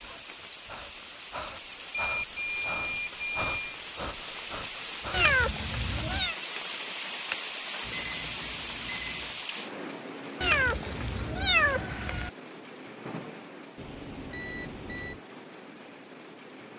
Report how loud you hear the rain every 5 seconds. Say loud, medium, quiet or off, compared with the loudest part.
medium, loud, medium, medium.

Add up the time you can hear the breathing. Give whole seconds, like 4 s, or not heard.
5 s.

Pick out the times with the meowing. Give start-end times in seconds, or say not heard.
5.1-6.3, 10.4-12.3.